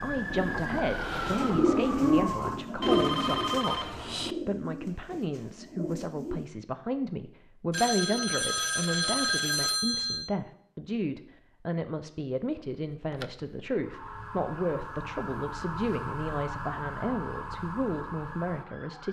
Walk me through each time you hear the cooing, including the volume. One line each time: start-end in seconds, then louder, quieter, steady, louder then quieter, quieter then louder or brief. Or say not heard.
0.1-6.5 louder then quieter.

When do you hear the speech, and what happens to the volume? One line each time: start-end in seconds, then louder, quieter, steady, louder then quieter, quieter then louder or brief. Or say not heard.
0.0-19.0 steady.